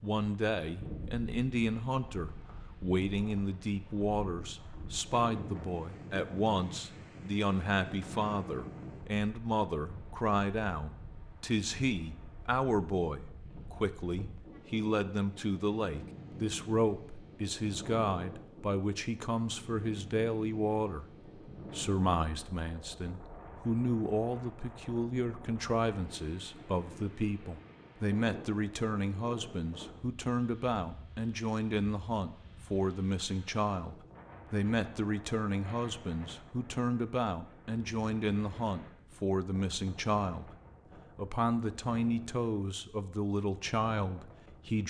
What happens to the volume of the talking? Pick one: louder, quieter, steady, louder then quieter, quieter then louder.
steady.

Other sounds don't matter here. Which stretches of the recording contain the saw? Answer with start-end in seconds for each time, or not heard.
not heard.